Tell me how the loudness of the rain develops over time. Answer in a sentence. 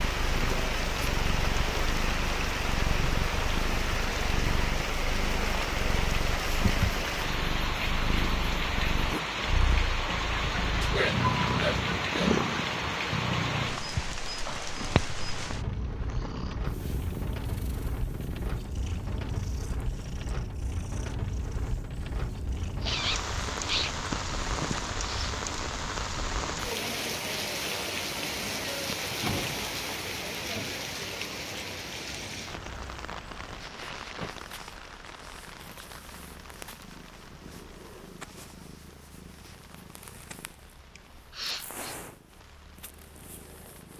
The volume of the rain goes down.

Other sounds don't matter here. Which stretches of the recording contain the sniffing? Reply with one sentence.
You can hear the sniffing from 10.2 to 12.4 s, from 22.8 to 25.4 s and from 41.0 to 42.0 s.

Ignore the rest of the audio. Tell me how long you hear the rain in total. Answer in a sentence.
The rain can be heard for 44 seconds in total.